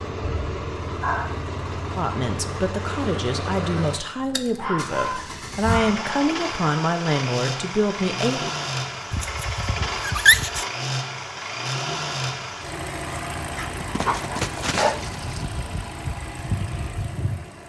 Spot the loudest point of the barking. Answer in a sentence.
The loudest moment of the barking is at 10 seconds.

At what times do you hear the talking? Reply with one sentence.
The talking can be heard from 1.9 to 8.5 s.